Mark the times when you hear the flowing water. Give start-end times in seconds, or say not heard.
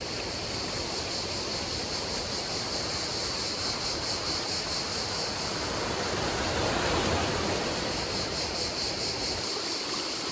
0.0-10.2.